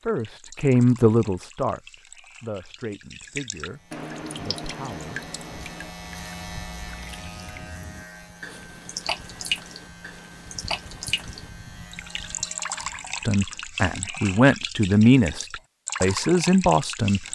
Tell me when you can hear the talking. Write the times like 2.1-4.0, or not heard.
0.0-5.2, 13.2-17.2.